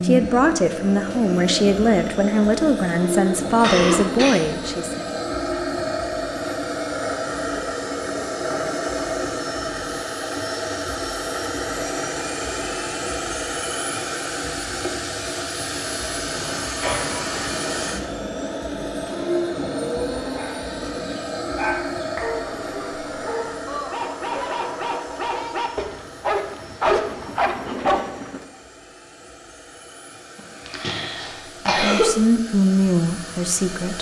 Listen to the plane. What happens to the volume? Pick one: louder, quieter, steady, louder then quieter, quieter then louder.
quieter.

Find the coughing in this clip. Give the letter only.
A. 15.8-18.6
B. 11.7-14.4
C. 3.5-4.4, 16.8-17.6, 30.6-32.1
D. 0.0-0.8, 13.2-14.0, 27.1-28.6
C.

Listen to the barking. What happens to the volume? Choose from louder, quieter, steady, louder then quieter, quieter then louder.
louder.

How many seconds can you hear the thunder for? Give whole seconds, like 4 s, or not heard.
3 s.